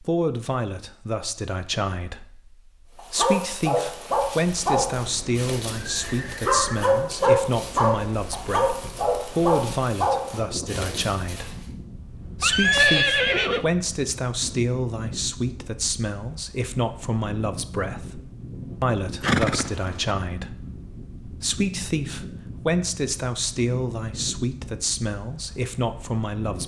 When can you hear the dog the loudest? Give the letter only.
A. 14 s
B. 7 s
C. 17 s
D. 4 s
B.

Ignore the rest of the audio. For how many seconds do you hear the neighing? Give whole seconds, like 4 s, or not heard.
3 s.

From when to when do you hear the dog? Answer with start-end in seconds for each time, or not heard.
3.0-11.6.